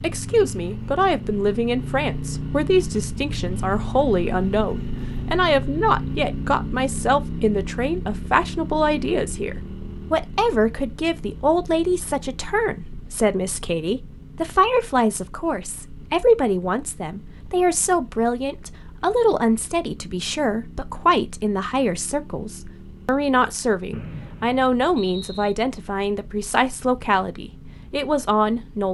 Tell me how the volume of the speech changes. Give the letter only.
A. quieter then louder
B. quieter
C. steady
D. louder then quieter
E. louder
C.